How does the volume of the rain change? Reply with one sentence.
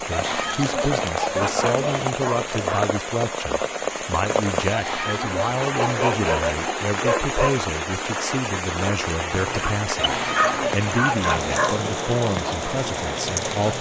The loudness of the rain stays about the same.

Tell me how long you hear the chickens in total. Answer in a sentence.
The chickens can be heard for 6 seconds in total.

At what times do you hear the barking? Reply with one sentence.
You can hear the barking from 1.3 to 3.0 s, from 5.8 to 7.5 s and from 9.3 to 11.8 s.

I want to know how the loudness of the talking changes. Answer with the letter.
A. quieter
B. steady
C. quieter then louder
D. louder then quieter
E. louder
B.